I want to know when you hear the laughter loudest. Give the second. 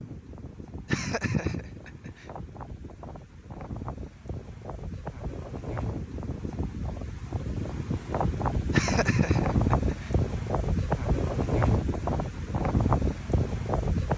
9 s.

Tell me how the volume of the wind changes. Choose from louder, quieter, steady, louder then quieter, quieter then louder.
louder.